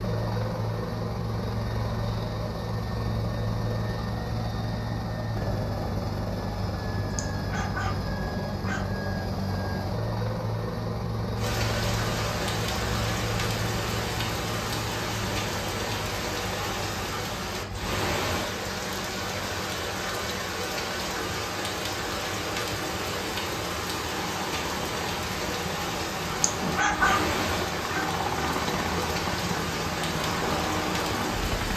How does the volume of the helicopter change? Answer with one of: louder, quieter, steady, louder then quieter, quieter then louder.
quieter then louder.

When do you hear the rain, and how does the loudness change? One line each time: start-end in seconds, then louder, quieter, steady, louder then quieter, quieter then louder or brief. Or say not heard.
11.3-31.7 steady.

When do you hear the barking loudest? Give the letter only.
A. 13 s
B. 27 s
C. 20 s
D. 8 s
B.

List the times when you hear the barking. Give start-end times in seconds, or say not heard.
7.1-8.8, 26.4-28.1.